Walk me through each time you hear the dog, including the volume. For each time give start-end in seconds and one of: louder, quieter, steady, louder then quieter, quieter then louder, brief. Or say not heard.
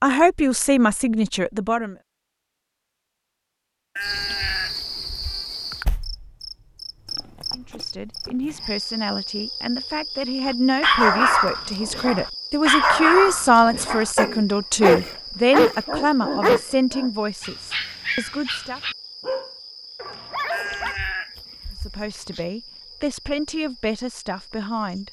10.4-20.9 quieter.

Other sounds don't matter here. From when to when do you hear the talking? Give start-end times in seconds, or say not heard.
0.0-1.9, 7.5-18.8, 21.8-25.0.